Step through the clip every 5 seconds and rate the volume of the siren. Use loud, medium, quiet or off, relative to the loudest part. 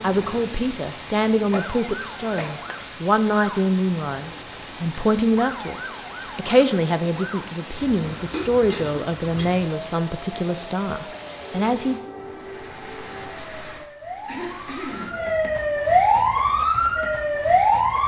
quiet, quiet, quiet, loud.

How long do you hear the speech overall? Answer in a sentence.
You can hear the speech for 12 seconds altogether.